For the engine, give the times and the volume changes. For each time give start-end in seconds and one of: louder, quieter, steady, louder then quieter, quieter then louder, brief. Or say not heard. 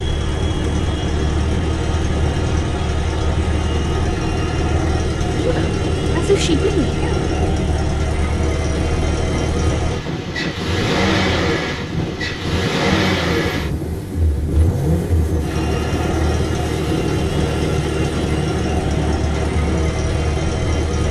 0.0-21.0 steady.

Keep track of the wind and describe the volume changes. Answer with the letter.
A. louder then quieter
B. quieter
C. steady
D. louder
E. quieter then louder
C.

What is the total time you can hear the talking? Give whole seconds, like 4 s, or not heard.
2 s.